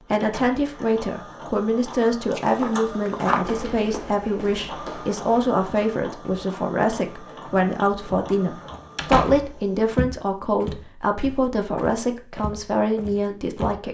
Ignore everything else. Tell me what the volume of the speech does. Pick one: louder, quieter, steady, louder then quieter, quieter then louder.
steady.